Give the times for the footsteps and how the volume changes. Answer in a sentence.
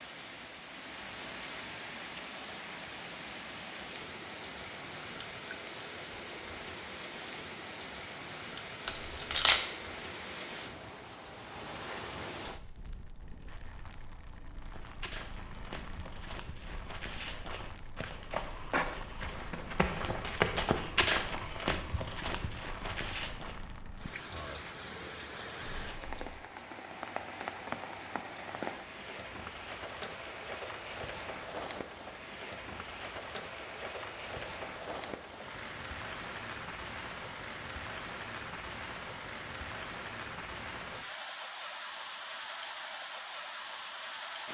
You can hear the footsteps from 14.7 to 23.6 s, getting louder then quieter.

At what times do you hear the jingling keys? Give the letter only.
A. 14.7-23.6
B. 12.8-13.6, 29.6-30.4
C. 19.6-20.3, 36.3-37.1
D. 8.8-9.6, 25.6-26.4
D.